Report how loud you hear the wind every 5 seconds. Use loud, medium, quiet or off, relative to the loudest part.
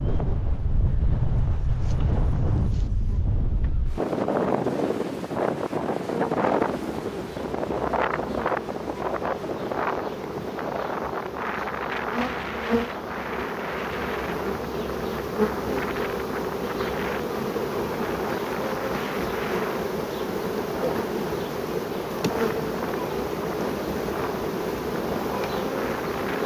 loud, loud, medium, medium, medium, medium.